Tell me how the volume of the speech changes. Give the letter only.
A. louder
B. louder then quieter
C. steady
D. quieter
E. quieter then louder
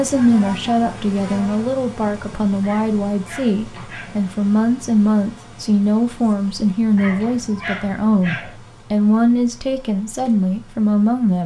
C.